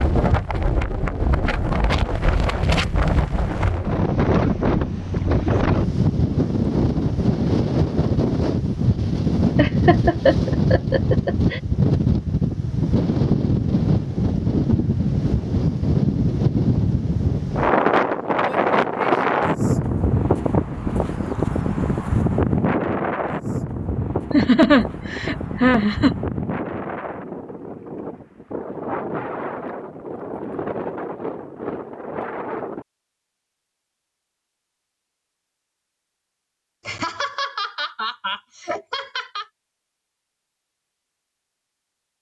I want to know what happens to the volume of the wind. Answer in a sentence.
The volume of the wind goes down.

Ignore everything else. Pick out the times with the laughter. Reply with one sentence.
The laughter can be heard from 9.6 to 11.6 s, from 24.3 to 26.1 s and from 36.9 to 39.5 s.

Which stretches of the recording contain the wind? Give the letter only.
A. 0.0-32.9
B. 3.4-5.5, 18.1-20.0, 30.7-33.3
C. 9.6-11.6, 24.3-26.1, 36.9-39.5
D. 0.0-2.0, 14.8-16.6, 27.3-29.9
A.